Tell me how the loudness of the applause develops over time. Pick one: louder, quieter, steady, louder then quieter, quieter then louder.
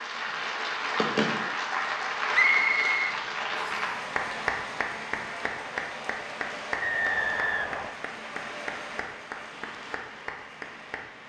quieter.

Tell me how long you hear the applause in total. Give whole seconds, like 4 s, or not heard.
11 s.